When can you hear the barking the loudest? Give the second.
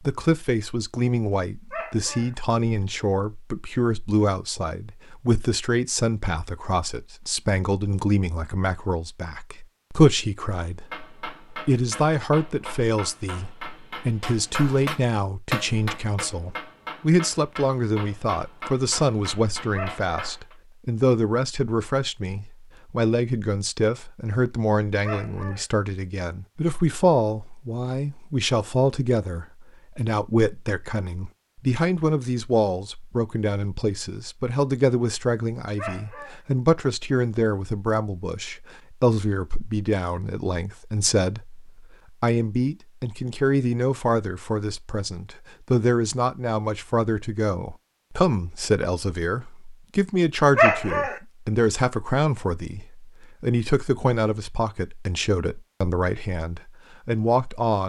51 s.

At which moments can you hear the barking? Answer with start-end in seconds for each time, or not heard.
1.7-2.3, 19.7-20.4, 25.0-25.6, 35.8-36.4, 50.5-51.1.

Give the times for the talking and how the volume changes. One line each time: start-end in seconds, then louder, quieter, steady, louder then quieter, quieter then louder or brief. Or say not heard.
0.0-57.8 steady.